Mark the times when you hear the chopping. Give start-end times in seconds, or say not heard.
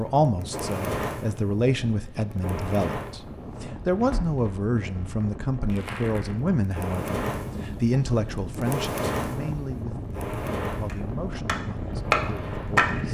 10.8-13.0.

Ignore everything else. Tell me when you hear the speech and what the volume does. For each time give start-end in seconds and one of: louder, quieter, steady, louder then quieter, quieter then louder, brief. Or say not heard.
0.0-13.0 quieter.